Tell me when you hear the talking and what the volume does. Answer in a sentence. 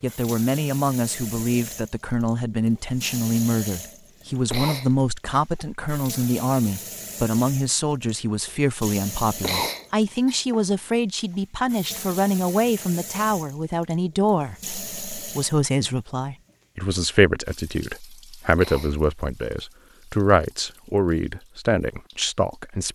You can hear the talking from 0.0 to 22.9 s, at a steady volume.